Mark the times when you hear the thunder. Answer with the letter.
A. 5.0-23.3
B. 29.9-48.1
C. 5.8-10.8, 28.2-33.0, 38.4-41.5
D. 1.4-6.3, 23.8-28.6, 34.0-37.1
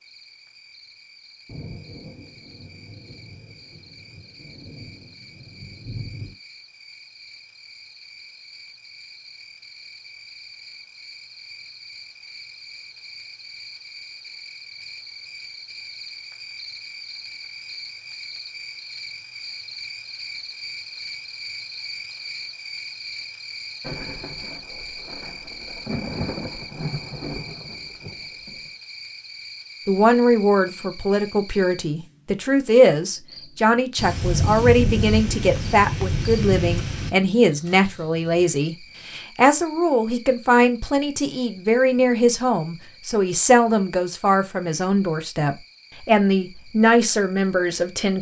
D.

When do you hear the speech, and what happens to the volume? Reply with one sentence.
The speech can be heard from 29.9 to 48.1 s, at a steady volume.